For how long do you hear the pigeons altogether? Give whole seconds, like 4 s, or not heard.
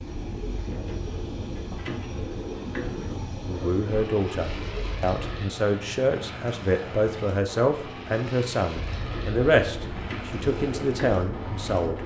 9 s.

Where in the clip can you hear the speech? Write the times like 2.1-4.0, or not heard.
3.5-12.0.